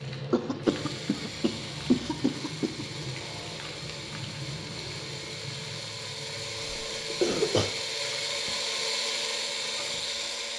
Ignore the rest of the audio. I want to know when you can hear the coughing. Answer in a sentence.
You can hear the coughing from 0.3 to 2.9 s and from 6.5 to 7.8 s.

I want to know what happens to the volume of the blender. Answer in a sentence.
The loudness of the blender goes up.